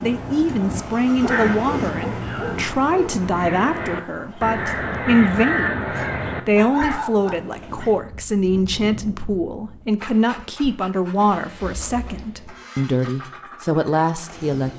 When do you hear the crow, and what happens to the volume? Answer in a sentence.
You can hear the crow from 1.2 to 7.0 s, getting louder.